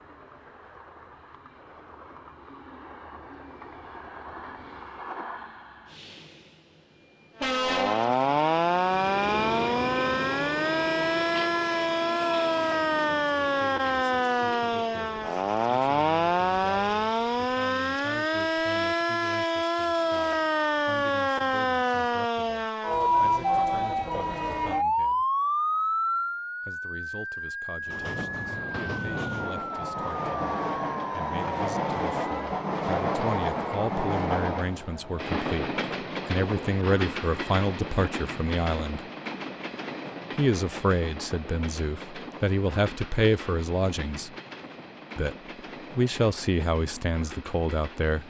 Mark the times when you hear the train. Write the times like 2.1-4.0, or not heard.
0.0-22.2, 27.9-48.2.